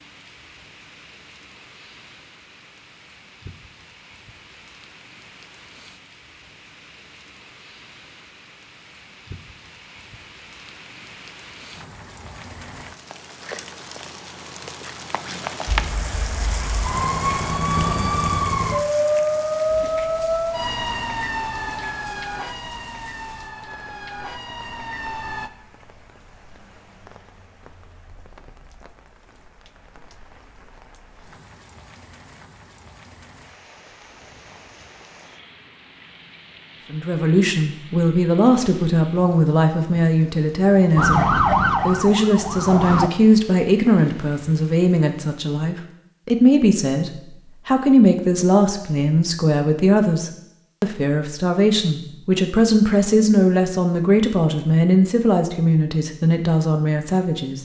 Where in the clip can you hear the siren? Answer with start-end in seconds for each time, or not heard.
15.7-25.5, 41.0-43.1.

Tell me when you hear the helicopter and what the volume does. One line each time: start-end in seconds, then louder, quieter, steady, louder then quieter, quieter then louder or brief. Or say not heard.
not heard.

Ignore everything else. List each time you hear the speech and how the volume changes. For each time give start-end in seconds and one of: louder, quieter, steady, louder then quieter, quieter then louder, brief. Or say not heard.
36.9-57.5 steady.